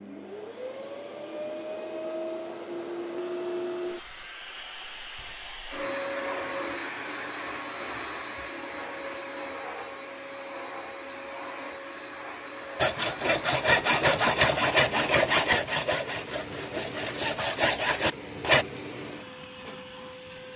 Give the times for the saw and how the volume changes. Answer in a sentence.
You can hear the saw from 12.8 to 18.6 s, getting quieter then louder.